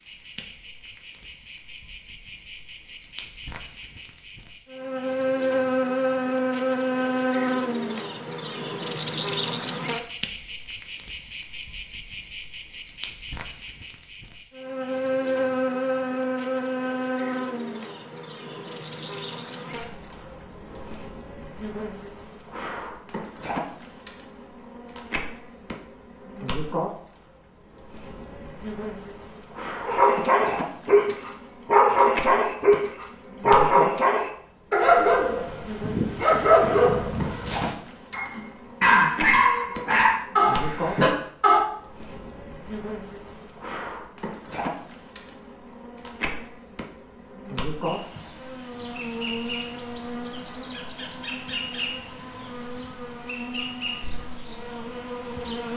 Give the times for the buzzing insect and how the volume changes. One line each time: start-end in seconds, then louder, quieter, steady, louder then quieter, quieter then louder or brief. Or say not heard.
0.0-55.7 quieter.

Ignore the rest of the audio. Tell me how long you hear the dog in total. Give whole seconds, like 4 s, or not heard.
12 s.